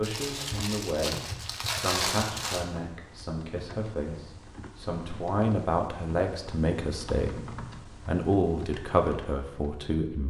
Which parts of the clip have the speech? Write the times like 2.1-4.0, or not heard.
0.0-10.2.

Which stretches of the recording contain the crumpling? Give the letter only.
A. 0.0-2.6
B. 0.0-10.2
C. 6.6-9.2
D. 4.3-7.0
A.